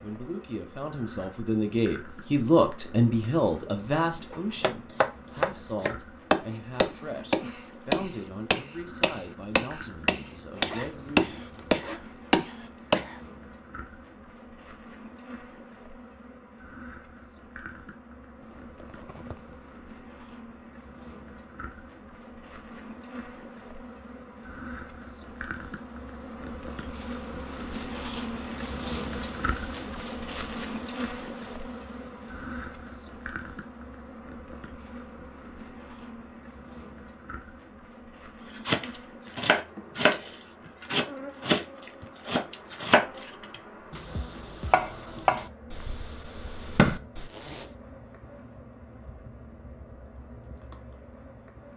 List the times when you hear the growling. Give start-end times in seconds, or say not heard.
not heard.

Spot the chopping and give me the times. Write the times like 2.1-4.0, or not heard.
4.3-13.2, 38.6-47.3.